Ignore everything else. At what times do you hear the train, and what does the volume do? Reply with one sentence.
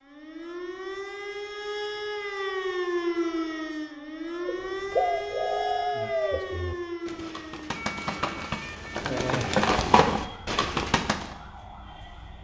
You can't hear the train here.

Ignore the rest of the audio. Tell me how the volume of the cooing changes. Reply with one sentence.
The loudness of the cooing goes down, then up.